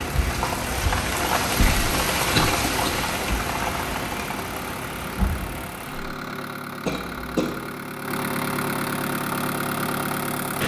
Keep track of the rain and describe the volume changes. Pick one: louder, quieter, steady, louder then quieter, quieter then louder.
quieter.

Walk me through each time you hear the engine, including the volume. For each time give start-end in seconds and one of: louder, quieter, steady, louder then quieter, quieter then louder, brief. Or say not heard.
0.0-10.6 louder.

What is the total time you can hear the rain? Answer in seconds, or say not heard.
6 s.